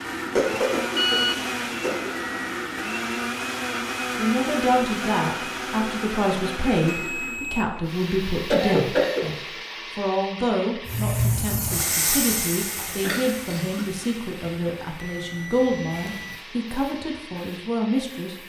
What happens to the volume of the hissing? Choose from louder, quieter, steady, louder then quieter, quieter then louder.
quieter.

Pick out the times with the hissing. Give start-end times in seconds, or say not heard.
10.8-18.4.